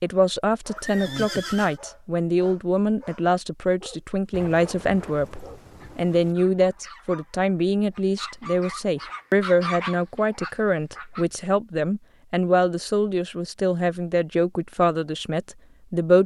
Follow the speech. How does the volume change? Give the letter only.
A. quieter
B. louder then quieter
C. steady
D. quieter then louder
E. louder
C.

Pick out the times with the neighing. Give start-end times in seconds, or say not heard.
0.8-1.8.